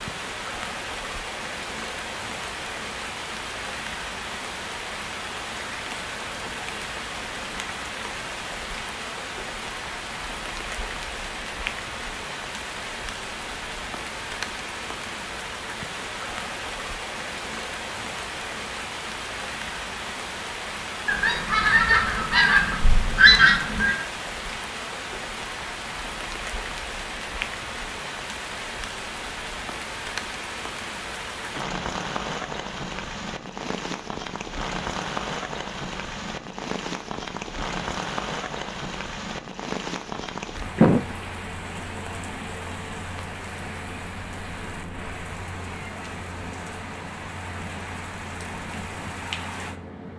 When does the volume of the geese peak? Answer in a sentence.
The loudest moment of the geese is at 23 seconds.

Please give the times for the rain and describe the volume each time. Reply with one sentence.
The rain can be heard from 0.0 to 50.1 s, at a steady volume.